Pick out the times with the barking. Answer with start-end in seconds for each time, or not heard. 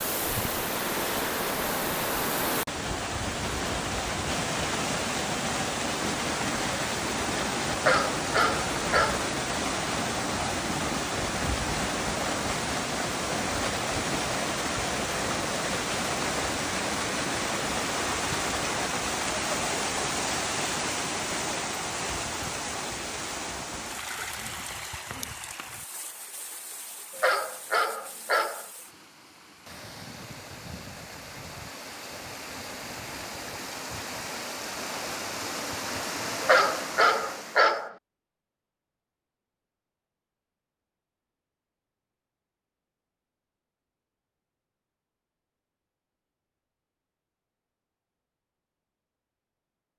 7.8-9.3, 27.1-28.6, 36.4-38.0.